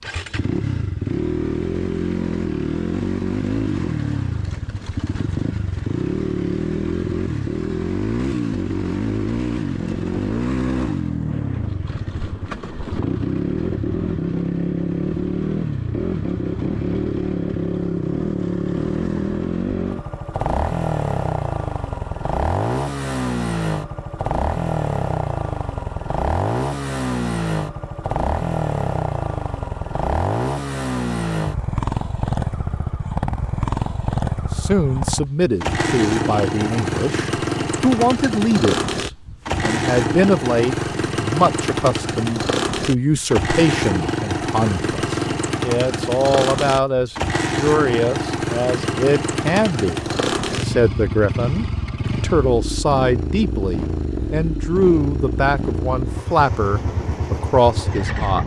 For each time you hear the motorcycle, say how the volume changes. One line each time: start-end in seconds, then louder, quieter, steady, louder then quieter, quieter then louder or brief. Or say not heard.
0.0-58.4 steady.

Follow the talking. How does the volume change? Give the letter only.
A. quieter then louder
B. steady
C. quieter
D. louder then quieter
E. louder
B.